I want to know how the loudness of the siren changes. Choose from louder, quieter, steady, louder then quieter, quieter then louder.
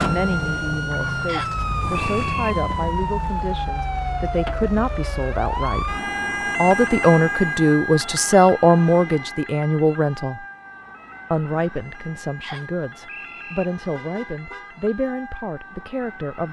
quieter.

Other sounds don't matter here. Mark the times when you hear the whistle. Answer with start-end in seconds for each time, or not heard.
1.2-2.5, 12.4-13.7.